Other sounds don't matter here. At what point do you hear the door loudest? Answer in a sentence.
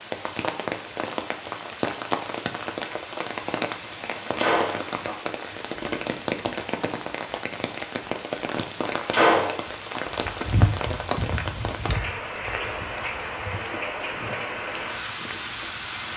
The loudest moment of the door is at 9 seconds.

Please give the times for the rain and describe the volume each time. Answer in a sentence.
You can hear the rain from 0.0 to 16.1 s, at a steady volume.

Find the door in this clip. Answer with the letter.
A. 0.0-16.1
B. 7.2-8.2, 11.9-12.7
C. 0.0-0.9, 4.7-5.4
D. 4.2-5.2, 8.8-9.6
D.